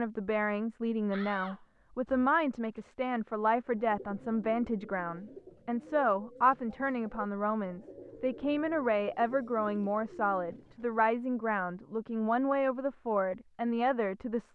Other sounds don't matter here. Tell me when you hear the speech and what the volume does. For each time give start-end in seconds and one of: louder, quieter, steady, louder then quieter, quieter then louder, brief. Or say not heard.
0.0-14.5 steady.